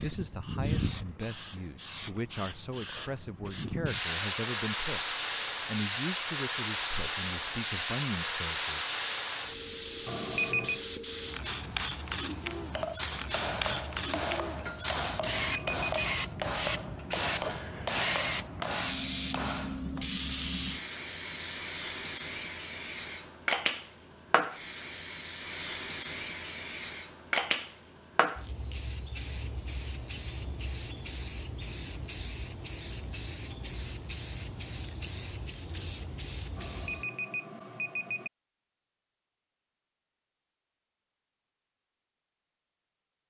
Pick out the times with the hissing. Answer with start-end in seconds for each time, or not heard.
0.0-37.0.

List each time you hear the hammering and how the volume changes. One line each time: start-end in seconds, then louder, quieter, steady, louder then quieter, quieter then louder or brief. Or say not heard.
12.8-20.1 steady.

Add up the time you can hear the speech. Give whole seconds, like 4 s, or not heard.
9 s.